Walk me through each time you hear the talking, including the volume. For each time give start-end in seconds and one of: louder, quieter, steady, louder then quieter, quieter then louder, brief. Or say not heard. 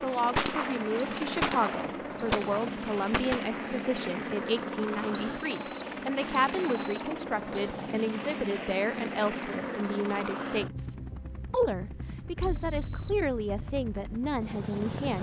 0.0-15.1 steady.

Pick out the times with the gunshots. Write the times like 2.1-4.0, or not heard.
0.3-3.6.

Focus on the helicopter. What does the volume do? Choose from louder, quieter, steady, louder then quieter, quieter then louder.
quieter.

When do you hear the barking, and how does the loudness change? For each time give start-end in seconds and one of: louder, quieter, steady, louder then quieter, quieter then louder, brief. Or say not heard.
not heard.